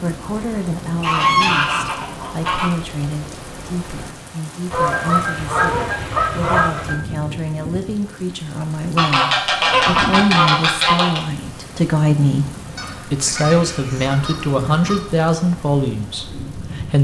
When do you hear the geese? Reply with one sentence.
You can hear the geese from 1.0 to 2.7 s, from 4.7 to 7.0 s, from 8.9 to 11.2 s and from 12.8 to 15.0 s.